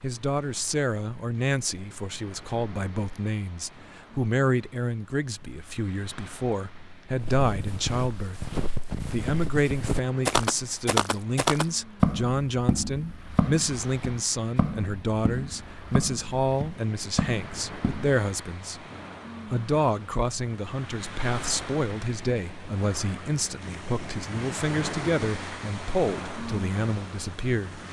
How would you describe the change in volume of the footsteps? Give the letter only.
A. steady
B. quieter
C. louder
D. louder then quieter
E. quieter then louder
D.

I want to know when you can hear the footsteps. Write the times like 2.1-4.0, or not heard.
7.2-18.1.